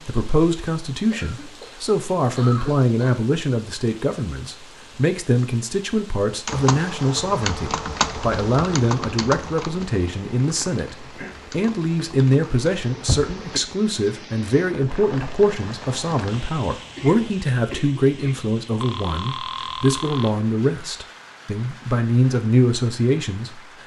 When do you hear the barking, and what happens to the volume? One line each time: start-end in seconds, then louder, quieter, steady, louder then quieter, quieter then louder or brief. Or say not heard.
not heard.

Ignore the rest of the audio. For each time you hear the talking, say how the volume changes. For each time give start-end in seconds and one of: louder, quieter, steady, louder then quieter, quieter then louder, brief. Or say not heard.
0.1-23.6 steady.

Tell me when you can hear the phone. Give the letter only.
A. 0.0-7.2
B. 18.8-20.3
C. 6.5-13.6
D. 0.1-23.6
B.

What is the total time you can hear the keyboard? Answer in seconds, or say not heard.
7 s.